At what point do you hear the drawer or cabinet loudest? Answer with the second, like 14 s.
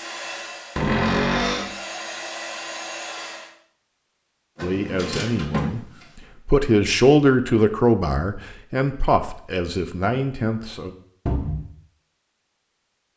1 s.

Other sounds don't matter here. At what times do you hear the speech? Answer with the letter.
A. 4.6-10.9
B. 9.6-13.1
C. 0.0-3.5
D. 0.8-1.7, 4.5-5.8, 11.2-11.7
A.